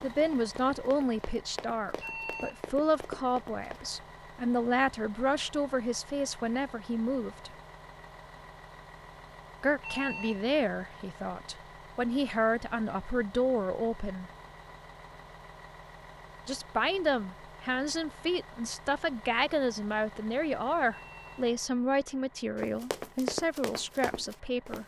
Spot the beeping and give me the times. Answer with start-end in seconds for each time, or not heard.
2.0-2.6, 9.8-10.4, 20.9-21.4.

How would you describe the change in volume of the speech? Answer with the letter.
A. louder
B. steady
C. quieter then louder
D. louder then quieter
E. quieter
B.